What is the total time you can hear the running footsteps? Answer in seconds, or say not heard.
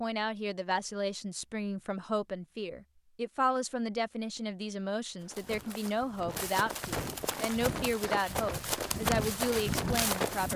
5 s.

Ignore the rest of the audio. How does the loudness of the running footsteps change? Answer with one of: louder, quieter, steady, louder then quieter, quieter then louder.
louder.